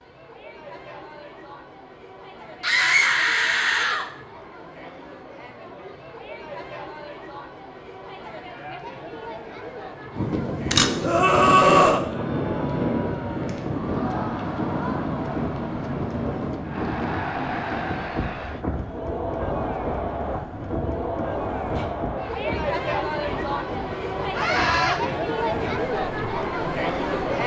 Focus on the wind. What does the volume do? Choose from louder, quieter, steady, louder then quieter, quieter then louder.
quieter.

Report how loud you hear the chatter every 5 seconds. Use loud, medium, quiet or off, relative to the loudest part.
quiet, quiet, medium, medium, loud, loud.